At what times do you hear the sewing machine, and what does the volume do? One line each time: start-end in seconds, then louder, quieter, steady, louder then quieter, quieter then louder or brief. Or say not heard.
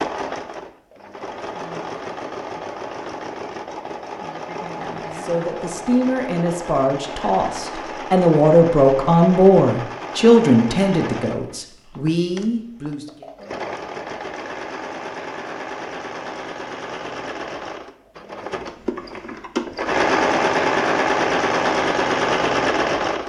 0.0-23.2 louder.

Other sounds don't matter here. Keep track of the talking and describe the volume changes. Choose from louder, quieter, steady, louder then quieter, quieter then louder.
louder then quieter.